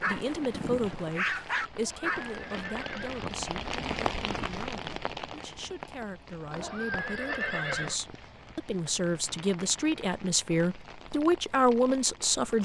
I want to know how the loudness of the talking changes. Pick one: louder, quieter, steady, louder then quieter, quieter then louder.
quieter then louder.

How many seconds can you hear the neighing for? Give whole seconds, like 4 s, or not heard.
3 s.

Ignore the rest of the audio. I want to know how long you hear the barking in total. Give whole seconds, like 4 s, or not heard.
3 s.